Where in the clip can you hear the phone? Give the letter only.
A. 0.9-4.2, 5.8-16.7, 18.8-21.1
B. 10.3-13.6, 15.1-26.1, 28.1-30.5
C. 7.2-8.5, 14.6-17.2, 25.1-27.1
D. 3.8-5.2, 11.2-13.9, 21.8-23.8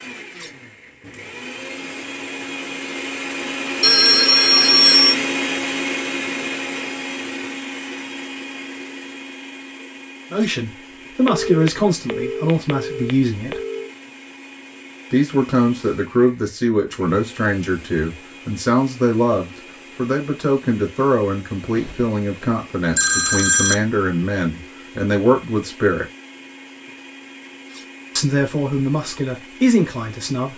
D.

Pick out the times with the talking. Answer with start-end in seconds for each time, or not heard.
10.3-13.6, 15.1-26.1, 28.1-30.5.